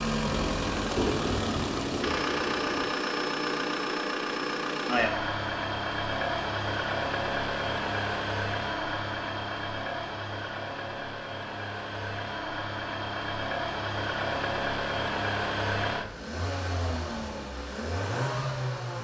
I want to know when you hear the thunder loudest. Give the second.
1 s.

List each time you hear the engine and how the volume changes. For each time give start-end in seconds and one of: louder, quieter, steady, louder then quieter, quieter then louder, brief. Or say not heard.
0.0-18.9 steady.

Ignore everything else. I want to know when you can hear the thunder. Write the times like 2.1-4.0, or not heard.
0.2-2.9.